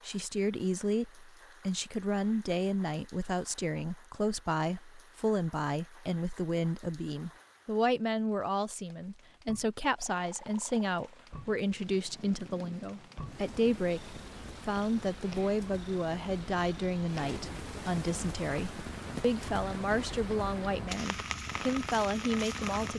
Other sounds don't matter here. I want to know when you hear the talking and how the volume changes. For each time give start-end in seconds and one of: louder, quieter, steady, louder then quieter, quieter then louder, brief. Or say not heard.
0.1-22.9 steady.